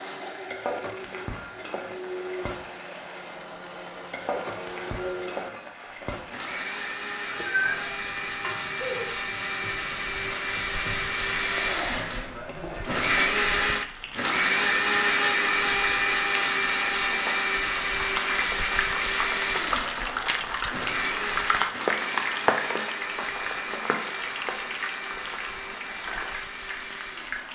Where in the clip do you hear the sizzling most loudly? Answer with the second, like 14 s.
22 s.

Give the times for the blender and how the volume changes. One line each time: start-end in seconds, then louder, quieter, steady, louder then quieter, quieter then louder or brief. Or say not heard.
0.0-27.5 louder then quieter.